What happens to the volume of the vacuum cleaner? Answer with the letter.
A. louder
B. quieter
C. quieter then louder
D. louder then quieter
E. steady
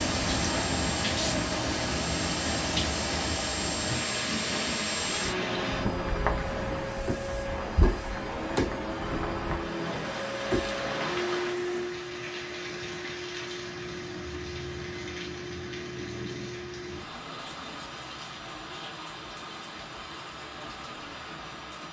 B.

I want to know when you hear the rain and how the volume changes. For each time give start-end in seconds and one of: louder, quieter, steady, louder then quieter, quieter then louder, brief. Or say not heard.
0.0-21.8 quieter.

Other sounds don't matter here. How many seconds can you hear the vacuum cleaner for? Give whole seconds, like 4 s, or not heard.
22 s.